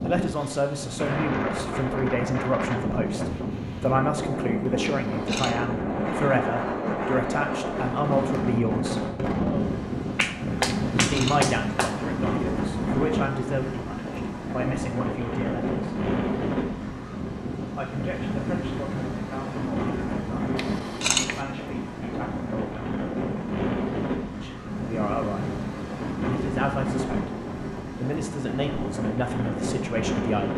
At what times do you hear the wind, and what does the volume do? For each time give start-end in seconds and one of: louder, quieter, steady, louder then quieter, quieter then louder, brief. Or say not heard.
0.0-30.5 steady.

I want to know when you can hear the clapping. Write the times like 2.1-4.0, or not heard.
10.2-12.0.